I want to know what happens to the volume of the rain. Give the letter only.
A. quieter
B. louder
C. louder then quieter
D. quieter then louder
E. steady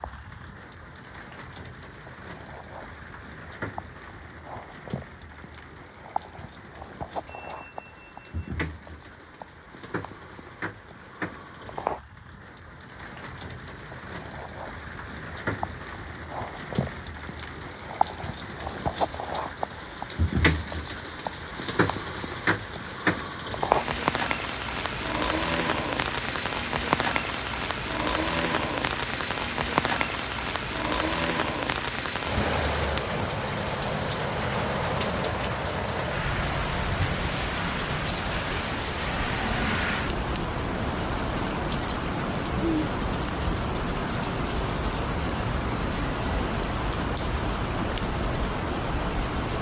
B.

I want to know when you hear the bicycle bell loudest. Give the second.
46 s.